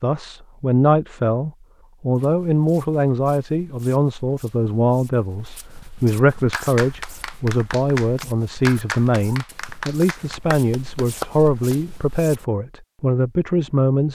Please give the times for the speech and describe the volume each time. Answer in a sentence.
You can hear the speech from 0.0 to 14.0 s, at a steady volume.